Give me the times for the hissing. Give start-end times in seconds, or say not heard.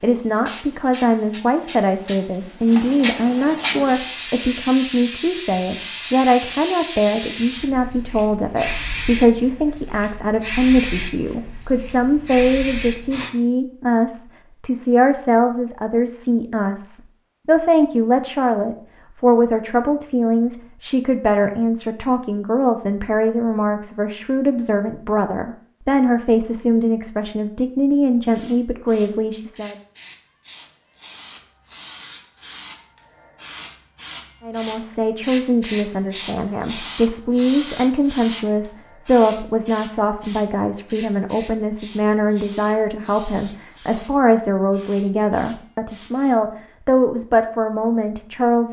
0.0-13.3, 28.3-46.4.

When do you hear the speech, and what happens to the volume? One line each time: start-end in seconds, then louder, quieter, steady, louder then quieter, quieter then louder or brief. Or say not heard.
0.0-29.8 steady
34.5-48.6 steady.